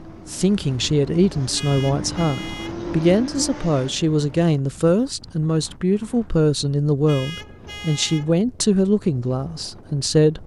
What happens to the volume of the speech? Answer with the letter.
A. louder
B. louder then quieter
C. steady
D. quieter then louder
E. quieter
C.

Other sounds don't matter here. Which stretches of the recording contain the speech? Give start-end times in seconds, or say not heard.
0.2-10.4.